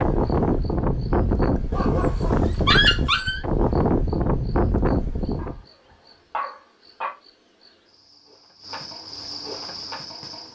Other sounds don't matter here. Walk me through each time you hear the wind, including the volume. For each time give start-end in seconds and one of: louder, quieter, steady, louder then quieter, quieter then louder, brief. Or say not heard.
0.0-5.6 steady.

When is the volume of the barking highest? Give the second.
3 s.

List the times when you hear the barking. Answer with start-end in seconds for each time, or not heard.
1.7-3.4, 5.3-7.2.